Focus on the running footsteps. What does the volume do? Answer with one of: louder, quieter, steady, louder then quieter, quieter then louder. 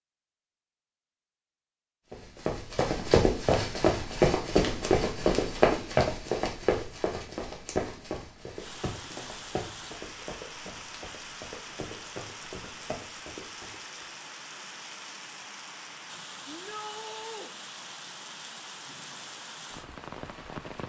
quieter.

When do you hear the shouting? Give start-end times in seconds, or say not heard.
16.4-17.5.